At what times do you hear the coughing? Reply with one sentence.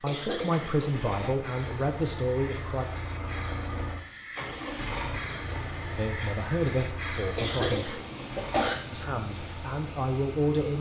The coughing can be heard from 0.1 to 1.3 s and from 7.3 to 8.8 s.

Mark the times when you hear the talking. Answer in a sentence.
The talking can be heard from 0.0 to 2.9 s, from 5.9 to 8.0 s and from 8.9 to 10.7 s.